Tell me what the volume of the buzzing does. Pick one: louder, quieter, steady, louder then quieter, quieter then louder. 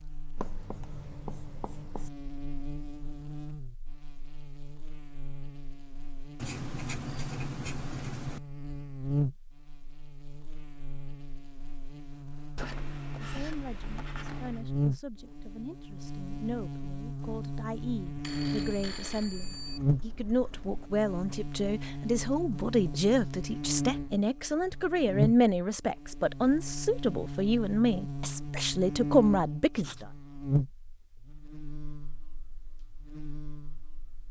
louder.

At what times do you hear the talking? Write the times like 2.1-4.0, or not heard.
13.2-30.1.